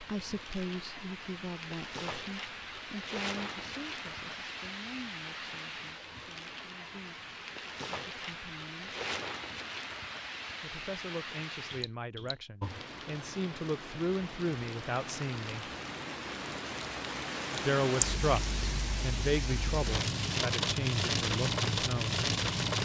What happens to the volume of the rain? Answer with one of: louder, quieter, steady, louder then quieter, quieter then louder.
louder.